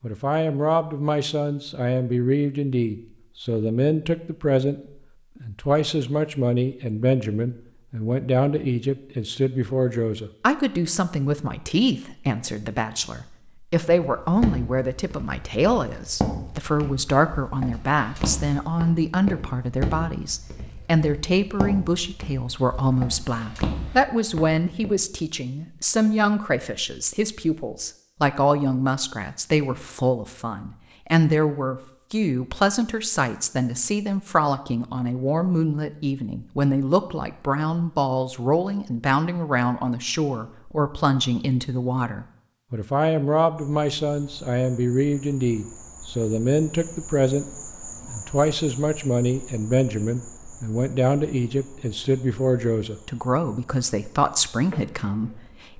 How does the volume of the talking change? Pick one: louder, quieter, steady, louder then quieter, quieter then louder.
steady.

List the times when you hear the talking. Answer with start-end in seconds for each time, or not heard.
0.0-4.8, 5.4-47.5, 48.0-55.7.